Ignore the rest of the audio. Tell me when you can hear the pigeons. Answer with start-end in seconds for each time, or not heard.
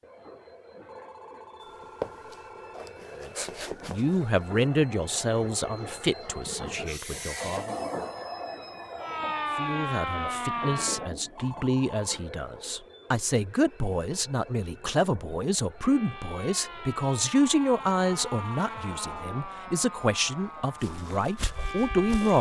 not heard.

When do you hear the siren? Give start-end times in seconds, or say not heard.
9.0-11.1, 15.8-22.3.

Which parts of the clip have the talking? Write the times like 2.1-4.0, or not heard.
3.1-7.8, 9.6-22.3.